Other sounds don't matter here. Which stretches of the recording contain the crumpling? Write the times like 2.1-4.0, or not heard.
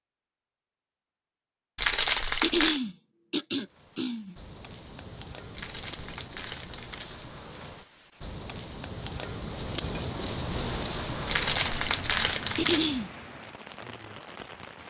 1.8-2.8, 5.5-7.2, 11.2-12.9.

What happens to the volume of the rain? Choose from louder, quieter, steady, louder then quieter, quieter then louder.
louder then quieter.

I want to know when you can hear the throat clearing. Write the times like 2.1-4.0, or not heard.
2.4-4.3, 12.6-13.1.